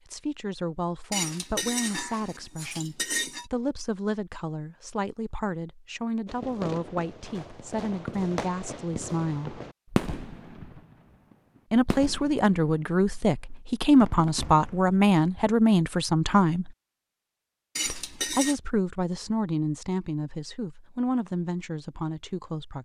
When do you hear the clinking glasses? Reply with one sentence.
You can hear the clinking glasses from 1.1 to 3.5 s and from 17.8 to 18.6 s.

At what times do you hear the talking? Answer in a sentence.
You can hear the talking from 0.1 to 9.6 s, from 11.7 to 16.8 s and from 17.9 to 22.8 s.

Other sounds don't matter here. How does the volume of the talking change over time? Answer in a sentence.
The volume of the talking goes up, then down.